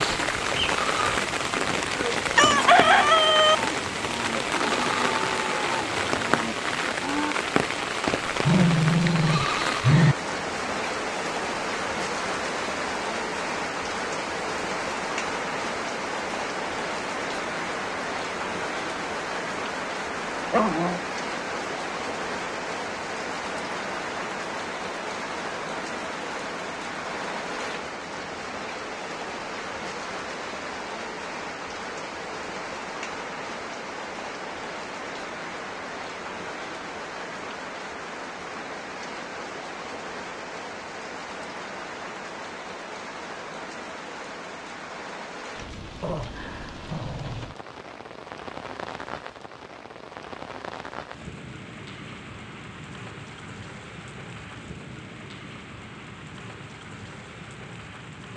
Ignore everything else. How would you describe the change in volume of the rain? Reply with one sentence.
The volume of the rain goes down.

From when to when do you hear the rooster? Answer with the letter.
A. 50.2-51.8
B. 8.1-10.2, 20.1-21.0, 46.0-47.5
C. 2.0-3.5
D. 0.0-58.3
C.